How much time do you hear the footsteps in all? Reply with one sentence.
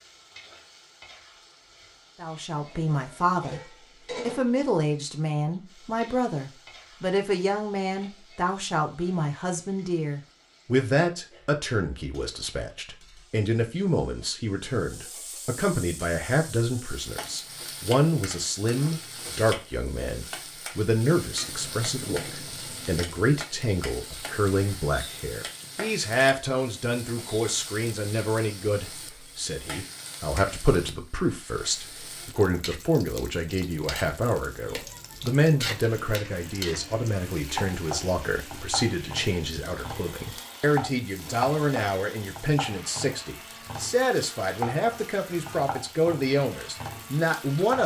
The footsteps can't be heard in this clip.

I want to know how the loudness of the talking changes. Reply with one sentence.
The loudness of the talking stays about the same.